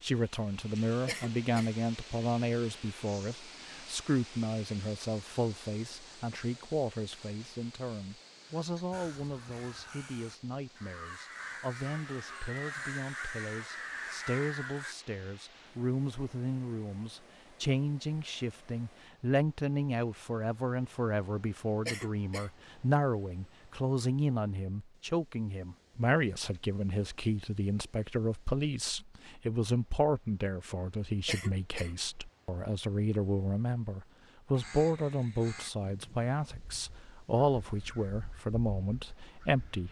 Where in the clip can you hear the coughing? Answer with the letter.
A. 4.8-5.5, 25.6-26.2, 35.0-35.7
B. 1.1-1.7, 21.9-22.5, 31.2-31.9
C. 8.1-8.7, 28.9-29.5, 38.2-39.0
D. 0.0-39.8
B.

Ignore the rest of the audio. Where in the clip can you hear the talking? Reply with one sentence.
The talking can be heard from 0.0 to 39.8 s.